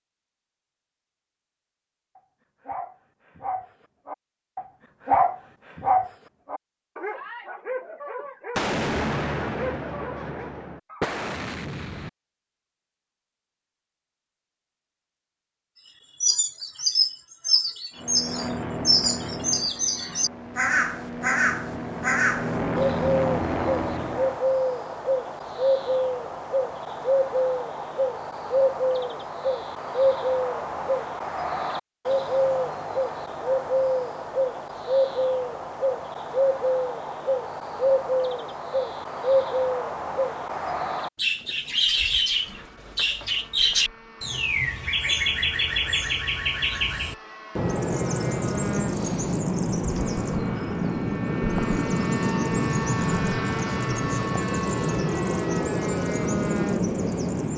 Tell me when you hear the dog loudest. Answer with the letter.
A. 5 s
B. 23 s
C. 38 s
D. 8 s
A.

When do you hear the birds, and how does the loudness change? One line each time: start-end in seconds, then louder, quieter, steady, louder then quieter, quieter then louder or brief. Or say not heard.
16.2-57.5 steady.